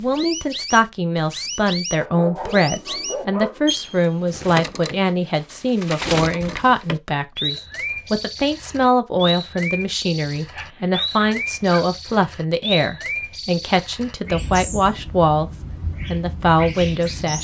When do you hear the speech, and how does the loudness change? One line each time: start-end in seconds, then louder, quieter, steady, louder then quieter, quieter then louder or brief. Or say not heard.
0.0-15.5 steady
16.1-17.4 brief.